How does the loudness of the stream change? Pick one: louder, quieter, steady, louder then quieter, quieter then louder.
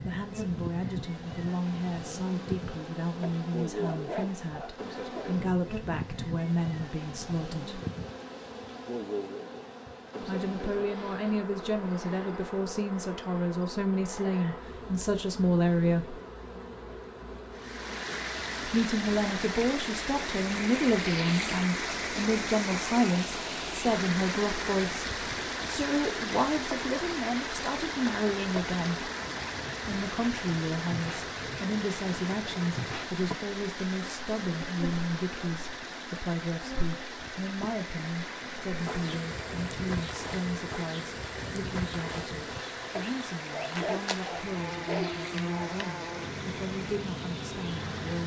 quieter.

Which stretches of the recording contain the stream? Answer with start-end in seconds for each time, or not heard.
17.5-48.2.